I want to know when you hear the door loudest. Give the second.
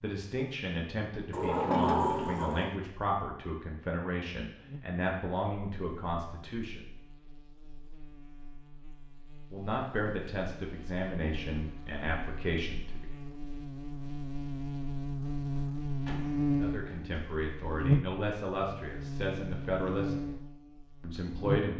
2 s.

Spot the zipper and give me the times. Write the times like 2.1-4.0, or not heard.
not heard.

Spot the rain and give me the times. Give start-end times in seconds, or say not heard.
not heard.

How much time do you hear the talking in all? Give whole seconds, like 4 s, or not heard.
15 s.